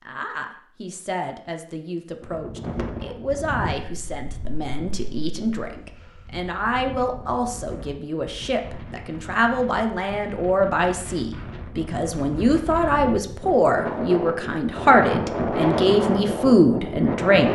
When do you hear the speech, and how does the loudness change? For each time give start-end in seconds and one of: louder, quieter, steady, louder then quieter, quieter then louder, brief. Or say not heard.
0.0-17.5 louder.